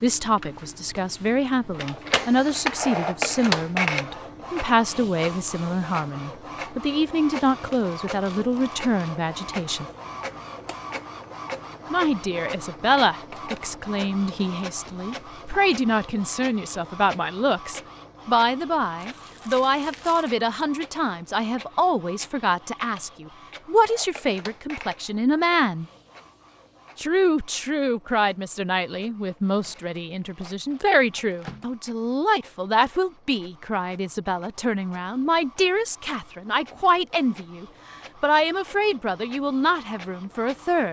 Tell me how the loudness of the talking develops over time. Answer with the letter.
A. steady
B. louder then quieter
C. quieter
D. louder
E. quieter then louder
A.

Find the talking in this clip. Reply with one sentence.
You can hear the talking from 0.0 to 9.8 s, from 11.9 to 25.9 s and from 26.9 to 40.8 s.